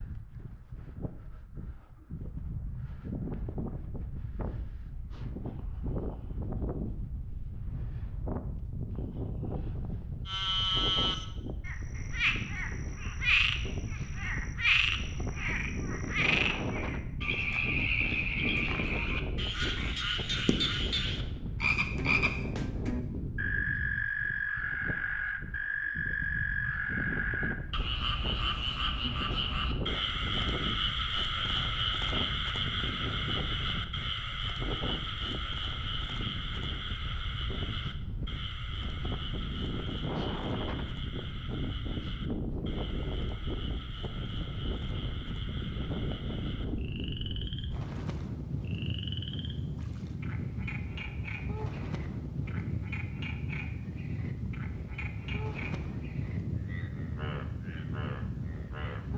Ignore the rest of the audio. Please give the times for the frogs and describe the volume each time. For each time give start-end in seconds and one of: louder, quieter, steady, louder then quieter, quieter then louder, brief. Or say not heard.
10.2-59.1 quieter.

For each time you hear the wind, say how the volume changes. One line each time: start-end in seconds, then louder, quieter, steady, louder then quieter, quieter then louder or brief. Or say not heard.
0.0-59.1 steady.